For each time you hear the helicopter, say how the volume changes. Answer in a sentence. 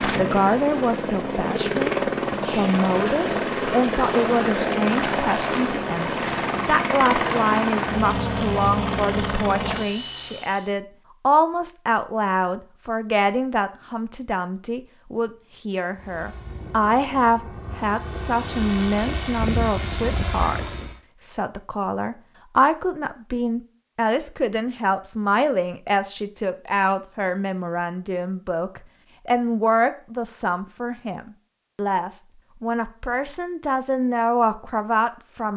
The helicopter can be heard from 0.0 to 10.7 s, at a steady volume; and from 15.9 to 21.0 s, getting louder.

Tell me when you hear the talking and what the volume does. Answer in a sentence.
You can hear the talking from 0.0 to 35.5 s, at a steady volume.